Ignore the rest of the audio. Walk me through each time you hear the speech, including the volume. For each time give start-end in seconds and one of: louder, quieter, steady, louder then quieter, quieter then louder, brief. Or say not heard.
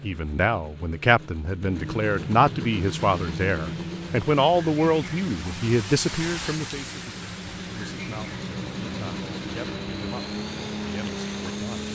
0.0-11.9 quieter.